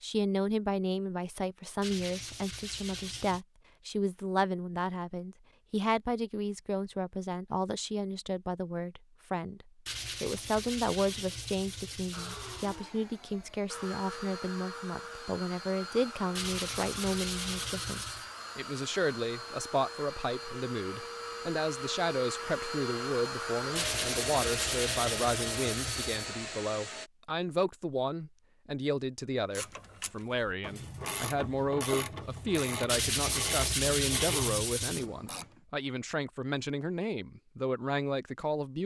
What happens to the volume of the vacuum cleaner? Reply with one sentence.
The loudness of the vacuum cleaner goes up.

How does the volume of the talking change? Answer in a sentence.
The volume of the talking stays about the same.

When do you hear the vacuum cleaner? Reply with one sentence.
The vacuum cleaner can be heard from 12.1 to 27.1 s.